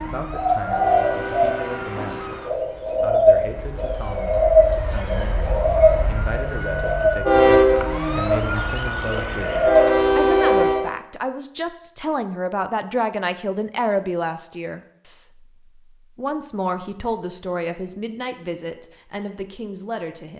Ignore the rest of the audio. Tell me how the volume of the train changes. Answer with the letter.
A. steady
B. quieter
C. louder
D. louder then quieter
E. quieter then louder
E.